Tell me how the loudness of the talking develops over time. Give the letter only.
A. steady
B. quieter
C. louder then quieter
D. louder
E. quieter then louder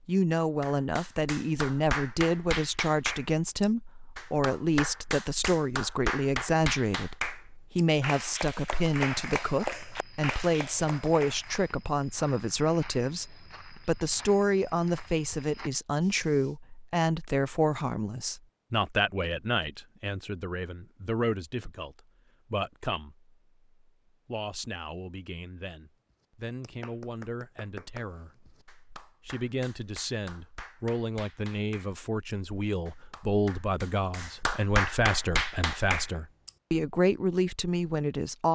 E.